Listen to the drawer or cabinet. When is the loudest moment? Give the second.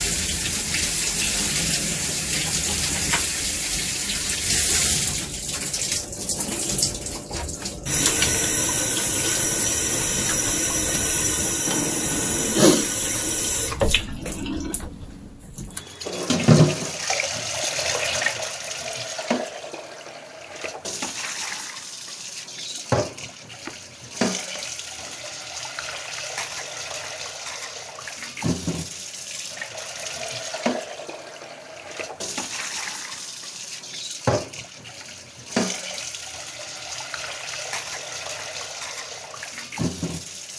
12 s.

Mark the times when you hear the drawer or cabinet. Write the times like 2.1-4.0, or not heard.
11.7-12.6, 22.7-23.8, 24.6-25.2.